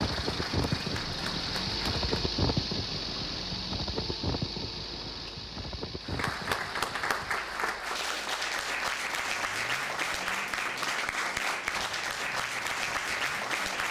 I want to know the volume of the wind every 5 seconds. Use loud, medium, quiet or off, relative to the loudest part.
loud, medium, off.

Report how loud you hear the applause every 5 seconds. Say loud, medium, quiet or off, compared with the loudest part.
medium, loud, loud.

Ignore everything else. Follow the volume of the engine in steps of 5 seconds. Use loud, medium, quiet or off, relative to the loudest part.
loud, medium, quiet.